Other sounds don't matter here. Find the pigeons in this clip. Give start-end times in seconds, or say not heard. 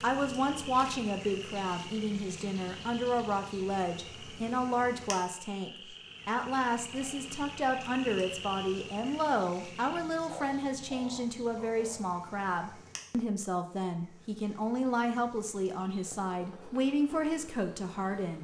not heard.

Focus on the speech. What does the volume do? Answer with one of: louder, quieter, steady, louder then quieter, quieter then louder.
steady.